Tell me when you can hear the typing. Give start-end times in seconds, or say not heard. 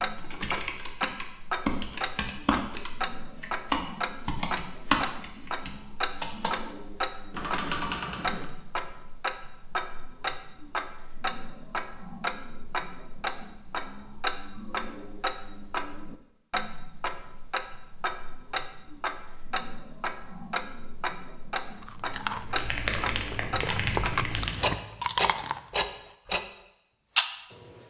0.0-8.4, 22.6-24.6.